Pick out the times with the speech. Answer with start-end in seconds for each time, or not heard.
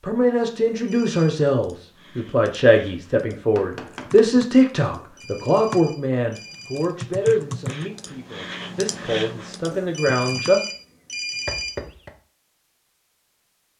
0.0-10.6.